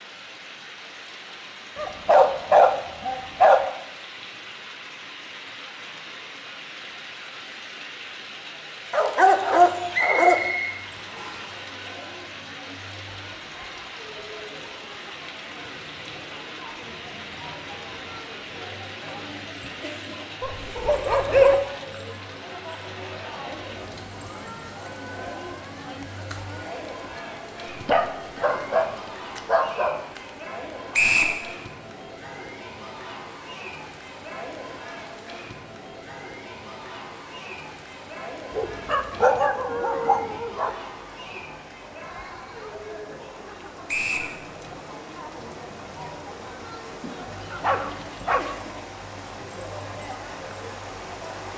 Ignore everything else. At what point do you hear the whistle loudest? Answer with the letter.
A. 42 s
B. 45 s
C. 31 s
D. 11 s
C.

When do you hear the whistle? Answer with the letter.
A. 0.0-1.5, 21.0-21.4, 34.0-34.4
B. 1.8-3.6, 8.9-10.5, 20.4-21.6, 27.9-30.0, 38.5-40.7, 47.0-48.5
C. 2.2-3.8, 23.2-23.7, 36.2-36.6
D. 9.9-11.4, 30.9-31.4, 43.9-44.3
D.